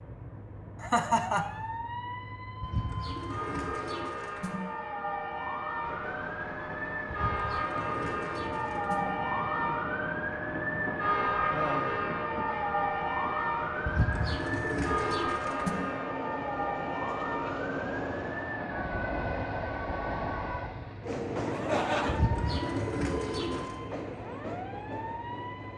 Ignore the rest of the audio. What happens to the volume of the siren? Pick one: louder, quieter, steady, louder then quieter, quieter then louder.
louder then quieter.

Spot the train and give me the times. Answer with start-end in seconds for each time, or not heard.
5.8-25.7.